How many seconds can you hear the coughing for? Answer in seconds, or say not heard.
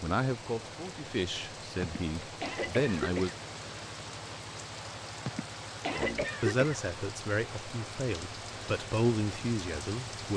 3 s.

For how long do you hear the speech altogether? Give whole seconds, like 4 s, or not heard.
8 s.